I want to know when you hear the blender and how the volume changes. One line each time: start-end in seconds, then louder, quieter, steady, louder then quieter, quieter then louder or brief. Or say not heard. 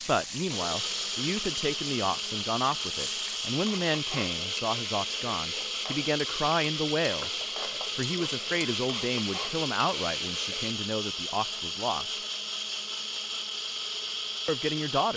0.1-15.1 steady.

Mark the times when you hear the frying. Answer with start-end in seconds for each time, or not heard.
0.0-10.8.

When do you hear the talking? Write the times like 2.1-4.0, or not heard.
0.0-7.3, 8.0-12.2, 14.4-15.1.